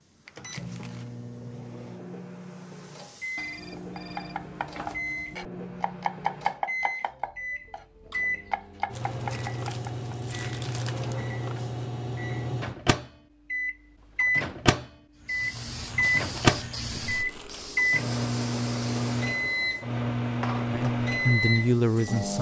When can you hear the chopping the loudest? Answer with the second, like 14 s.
6 s.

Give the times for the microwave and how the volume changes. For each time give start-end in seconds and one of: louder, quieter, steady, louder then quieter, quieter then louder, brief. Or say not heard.
0.3-22.3 louder.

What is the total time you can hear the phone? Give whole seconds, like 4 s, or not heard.
2 s.